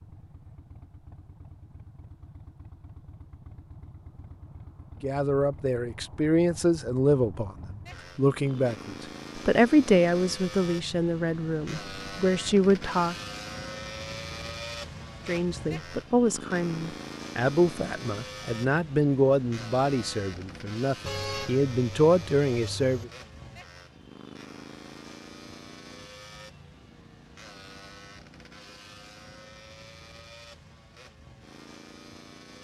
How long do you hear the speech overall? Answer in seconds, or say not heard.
16 s.